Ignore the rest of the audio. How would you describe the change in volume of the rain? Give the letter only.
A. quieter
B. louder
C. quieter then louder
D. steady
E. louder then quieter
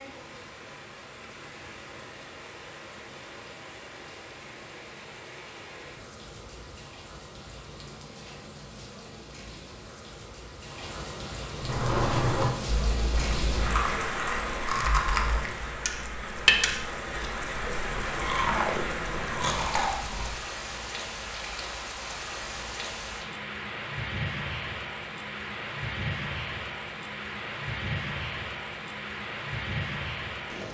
B.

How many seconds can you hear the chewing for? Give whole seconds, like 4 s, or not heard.
9 s.